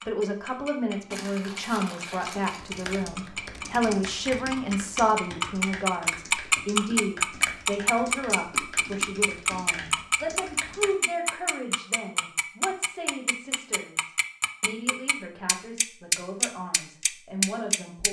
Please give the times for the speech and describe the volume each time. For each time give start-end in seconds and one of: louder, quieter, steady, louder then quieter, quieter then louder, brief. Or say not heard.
0.1-18.0 quieter.